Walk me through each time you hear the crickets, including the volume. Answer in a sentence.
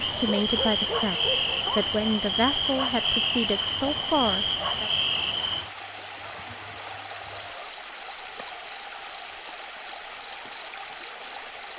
The crickets can be heard from 0.0 to 11.7 s, at a steady volume.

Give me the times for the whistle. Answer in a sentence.
The whistle can't be heard in this clip.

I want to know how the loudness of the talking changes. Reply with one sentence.
The loudness of the talking stays about the same.